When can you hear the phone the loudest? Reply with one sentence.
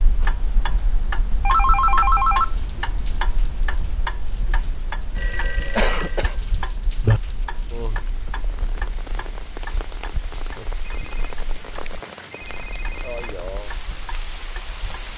The loudest moment of the phone is at 2 seconds.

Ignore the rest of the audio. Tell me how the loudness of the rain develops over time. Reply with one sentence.
The volume of the rain goes up.